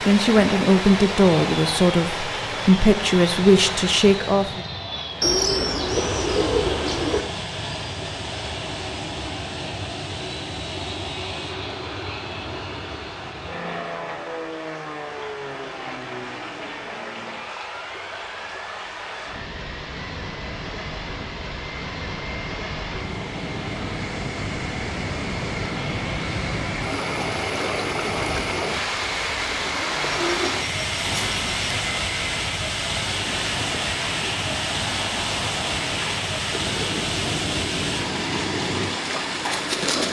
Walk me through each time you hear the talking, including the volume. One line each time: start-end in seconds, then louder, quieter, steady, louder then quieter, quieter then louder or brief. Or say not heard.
0.1-4.7 steady.